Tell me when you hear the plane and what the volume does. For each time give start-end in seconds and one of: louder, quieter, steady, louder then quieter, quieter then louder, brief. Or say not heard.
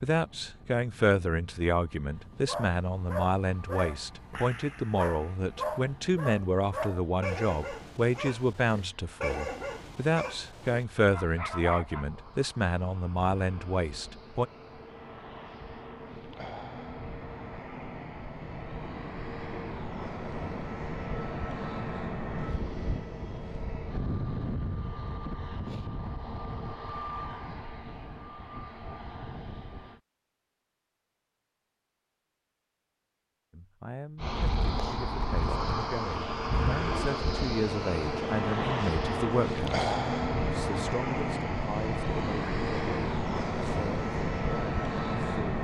0.1-30.0 louder
34.1-45.5 steady.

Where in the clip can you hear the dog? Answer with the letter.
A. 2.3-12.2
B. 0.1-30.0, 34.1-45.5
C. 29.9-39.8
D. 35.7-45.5
A.